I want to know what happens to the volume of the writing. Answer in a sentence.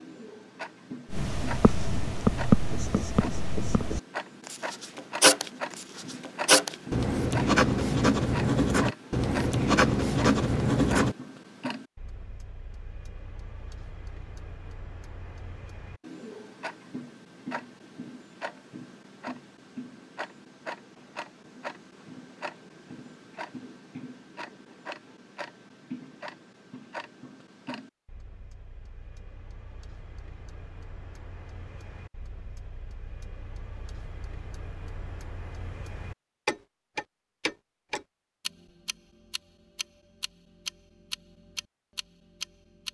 The volume of the writing goes down, then up.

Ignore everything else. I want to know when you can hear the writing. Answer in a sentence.
You can hear the writing from 1.1 to 11.2 s.